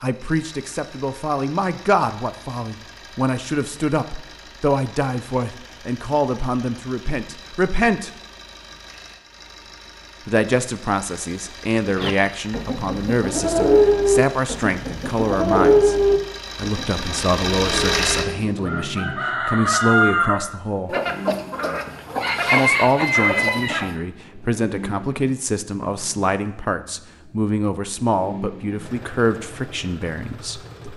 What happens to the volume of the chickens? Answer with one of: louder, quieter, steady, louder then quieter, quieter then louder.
quieter then louder.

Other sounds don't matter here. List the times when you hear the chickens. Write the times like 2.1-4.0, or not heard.
11.9-23.9.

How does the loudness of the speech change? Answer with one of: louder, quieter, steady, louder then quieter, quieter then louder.
steady.